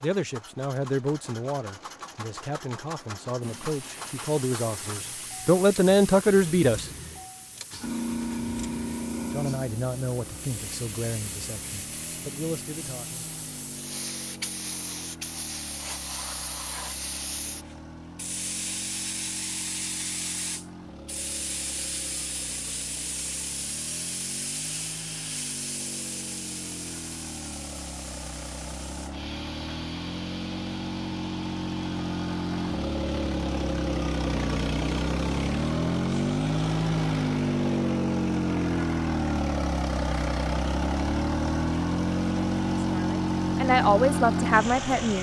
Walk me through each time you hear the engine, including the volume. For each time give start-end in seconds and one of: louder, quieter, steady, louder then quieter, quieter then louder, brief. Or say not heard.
0.0-45.1 louder.